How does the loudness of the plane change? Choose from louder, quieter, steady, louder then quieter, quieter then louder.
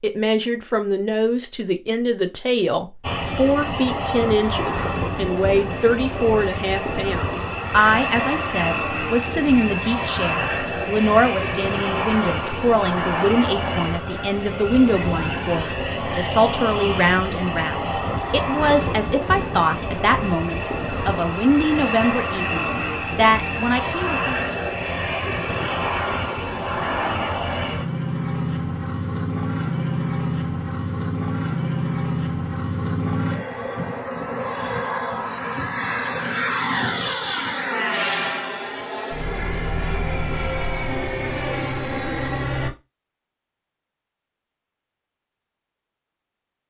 steady.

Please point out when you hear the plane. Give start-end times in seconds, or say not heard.
3.0-42.7.